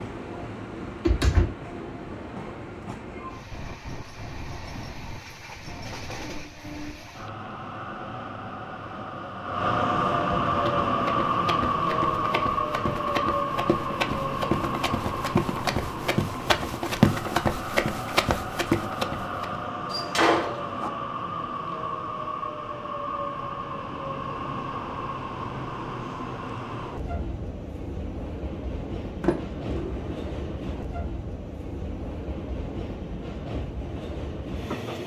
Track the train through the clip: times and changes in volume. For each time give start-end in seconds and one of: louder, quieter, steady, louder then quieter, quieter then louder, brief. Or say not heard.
0.0-35.0 louder then quieter.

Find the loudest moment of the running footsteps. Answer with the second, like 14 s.
17 s.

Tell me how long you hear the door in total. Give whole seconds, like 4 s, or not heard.
3 s.